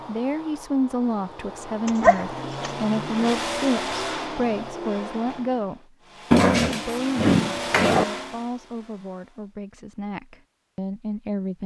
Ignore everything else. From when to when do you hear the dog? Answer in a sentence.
You can hear the dog from 1.9 to 2.7 s and from 6.3 to 8.1 s.